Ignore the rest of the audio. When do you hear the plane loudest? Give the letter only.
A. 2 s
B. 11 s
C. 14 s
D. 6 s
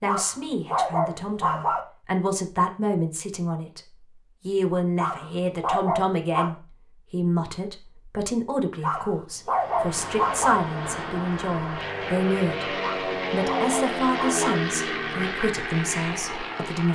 C.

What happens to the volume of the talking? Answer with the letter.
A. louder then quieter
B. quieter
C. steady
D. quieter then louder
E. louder
C.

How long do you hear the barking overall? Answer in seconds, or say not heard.
7 s.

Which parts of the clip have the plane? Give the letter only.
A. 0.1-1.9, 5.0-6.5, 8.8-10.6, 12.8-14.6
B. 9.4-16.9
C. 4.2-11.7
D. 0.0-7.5
B.